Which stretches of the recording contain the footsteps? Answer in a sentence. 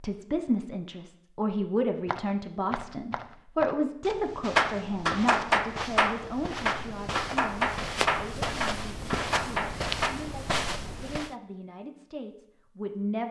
The footsteps can be heard from 2.0 to 11.3 s.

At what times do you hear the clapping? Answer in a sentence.
You can hear the clapping from 4.5 to 10.1 s.